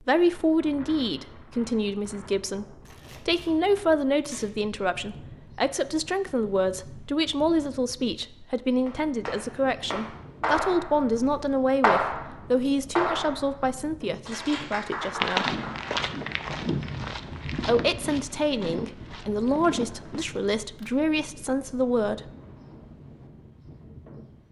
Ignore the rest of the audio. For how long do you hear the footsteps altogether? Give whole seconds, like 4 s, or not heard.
5 s.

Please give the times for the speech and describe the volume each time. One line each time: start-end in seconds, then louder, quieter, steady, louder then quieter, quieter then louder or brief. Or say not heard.
0.1-15.5 steady
17.6-22.3 steady.